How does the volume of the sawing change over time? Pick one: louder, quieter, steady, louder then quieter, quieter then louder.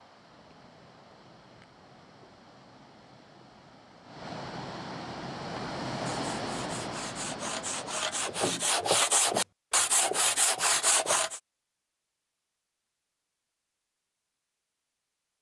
louder.